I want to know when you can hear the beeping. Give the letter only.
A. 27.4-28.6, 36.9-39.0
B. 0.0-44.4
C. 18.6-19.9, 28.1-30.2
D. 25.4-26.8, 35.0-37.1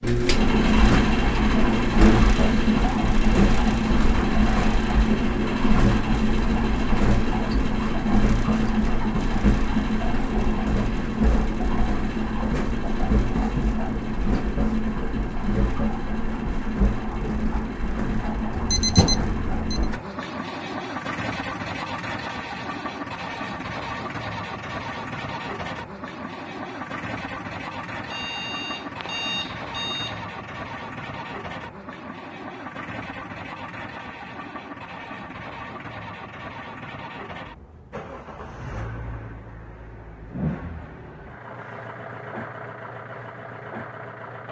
C.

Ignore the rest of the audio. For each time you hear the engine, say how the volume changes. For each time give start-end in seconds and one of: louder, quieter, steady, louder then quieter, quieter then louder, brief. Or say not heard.
0.0-44.4 quieter.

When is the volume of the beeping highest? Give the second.
19 s.